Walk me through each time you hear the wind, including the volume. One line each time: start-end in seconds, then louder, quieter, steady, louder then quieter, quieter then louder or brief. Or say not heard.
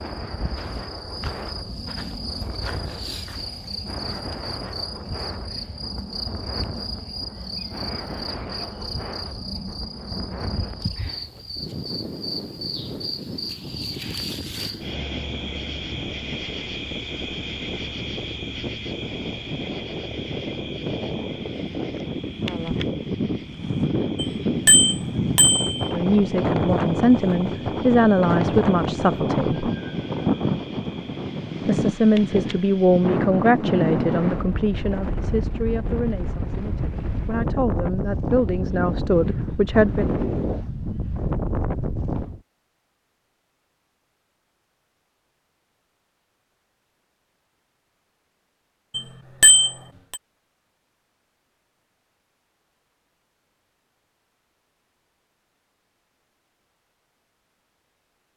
0.0-42.4 louder.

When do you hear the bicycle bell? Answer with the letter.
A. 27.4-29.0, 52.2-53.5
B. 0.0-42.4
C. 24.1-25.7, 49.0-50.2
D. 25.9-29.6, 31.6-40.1
C.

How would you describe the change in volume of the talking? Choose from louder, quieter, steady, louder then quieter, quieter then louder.
quieter then louder.